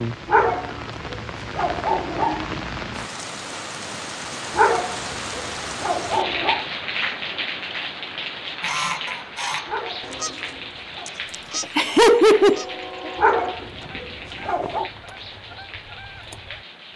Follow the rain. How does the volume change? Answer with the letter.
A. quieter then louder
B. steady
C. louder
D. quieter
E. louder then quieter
D.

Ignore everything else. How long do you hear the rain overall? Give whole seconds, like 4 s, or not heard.
17 s.